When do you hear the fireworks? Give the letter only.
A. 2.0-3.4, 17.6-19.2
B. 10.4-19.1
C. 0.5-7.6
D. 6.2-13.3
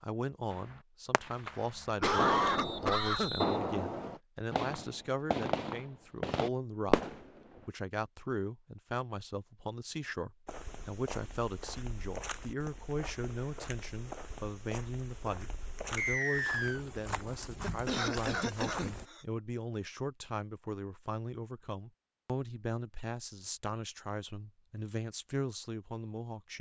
C.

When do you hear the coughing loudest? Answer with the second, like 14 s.
2 s.